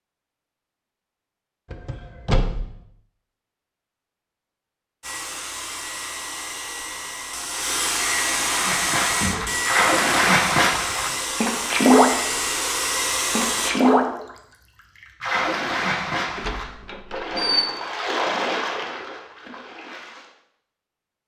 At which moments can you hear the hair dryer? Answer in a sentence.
The hair dryer can be heard from 5.0 to 13.7 s.